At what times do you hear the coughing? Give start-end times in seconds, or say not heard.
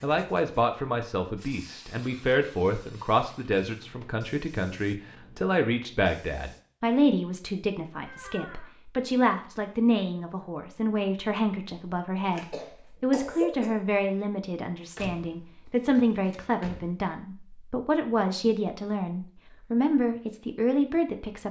12.3-13.7.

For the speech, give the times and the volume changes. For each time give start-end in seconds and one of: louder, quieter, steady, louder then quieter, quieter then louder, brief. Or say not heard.
0.0-21.4 steady.